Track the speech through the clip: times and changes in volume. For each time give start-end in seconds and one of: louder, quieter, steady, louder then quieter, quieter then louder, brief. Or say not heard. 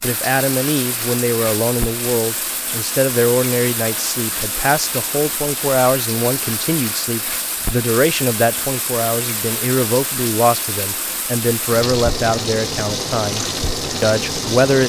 0.0-14.8 steady.